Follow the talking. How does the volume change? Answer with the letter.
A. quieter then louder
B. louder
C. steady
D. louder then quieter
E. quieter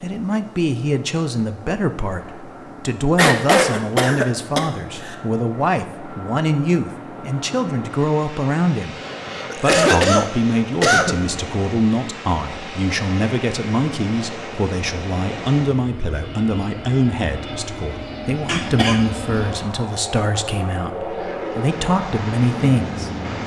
C.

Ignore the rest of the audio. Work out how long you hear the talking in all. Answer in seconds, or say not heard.
23 s.